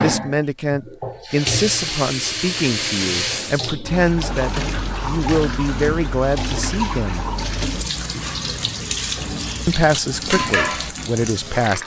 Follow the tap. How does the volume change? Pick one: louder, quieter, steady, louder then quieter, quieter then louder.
steady.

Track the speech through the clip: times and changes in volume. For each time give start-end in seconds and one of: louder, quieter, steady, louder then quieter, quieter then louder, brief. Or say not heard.
0.0-7.2 steady
9.7-11.8 brief.